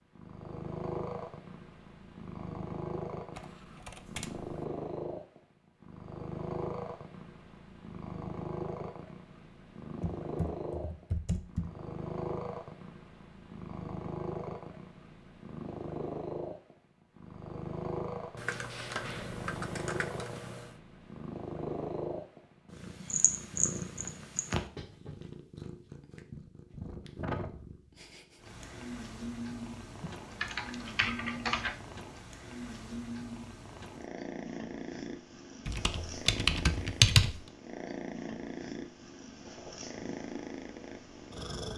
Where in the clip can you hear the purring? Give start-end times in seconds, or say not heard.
0.1-41.7.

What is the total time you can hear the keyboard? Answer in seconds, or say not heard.
9 s.